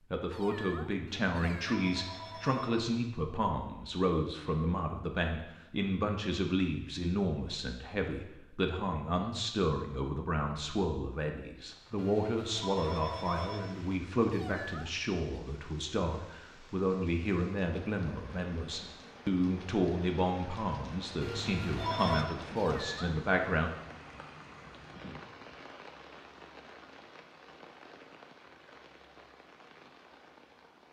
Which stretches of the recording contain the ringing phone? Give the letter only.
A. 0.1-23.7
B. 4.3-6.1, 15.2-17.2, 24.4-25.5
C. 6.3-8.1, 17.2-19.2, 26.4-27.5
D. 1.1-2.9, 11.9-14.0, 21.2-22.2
D.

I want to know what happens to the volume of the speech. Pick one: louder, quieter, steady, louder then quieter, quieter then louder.
steady.